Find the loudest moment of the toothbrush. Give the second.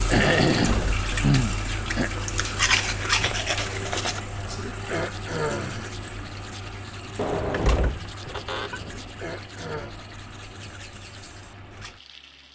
3 s.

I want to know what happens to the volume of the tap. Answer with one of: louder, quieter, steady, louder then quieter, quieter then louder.
quieter.